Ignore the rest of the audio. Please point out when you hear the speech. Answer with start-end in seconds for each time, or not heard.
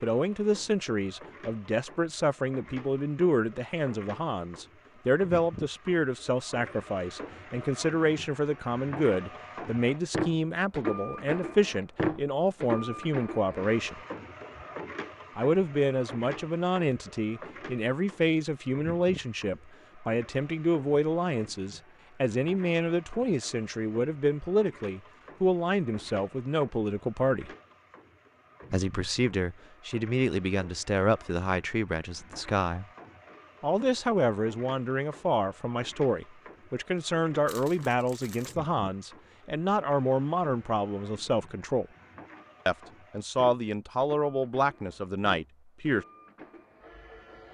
0.0-14.0, 15.3-27.5, 28.7-32.9, 33.6-41.9, 42.6-46.0.